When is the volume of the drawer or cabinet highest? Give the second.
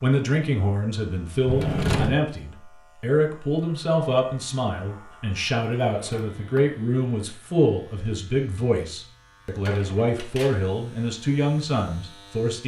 2 s.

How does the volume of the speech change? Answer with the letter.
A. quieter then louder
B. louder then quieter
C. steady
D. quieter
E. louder
C.